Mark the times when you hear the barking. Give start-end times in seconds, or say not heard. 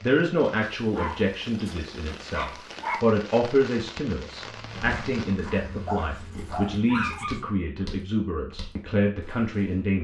0.8-3.0, 5.8-7.4.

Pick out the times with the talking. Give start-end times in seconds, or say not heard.
0.0-10.0.